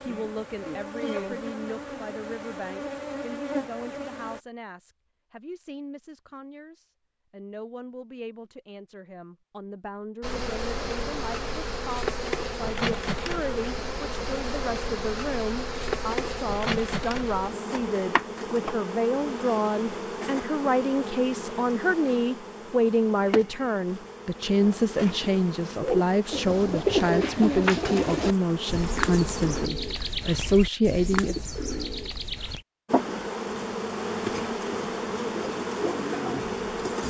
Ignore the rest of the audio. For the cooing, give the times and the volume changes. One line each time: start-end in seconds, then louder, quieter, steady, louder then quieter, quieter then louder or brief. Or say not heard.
25.8-32.6 quieter.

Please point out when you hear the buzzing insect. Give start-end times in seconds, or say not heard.
0.0-4.4, 10.2-29.7, 32.9-37.0.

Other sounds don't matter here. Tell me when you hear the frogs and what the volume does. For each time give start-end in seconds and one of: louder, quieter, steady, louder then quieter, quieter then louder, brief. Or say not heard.
not heard.